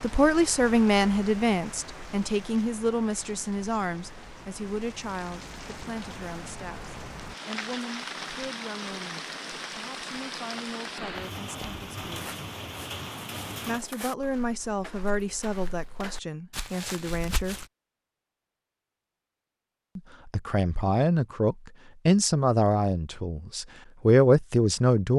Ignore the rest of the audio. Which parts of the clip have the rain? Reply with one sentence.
You can hear the rain from 0.0 to 13.8 s.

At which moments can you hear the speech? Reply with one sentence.
You can hear the speech from 0.0 to 12.3 s, from 13.7 to 17.6 s and from 19.9 to 25.1 s.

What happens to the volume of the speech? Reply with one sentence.
The volume of the speech goes down, then up.